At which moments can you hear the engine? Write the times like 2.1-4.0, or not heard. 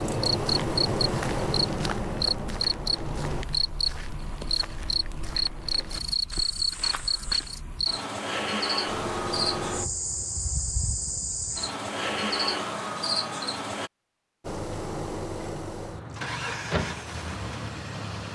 0.0-3.5, 8.8-10.6, 14.4-18.3.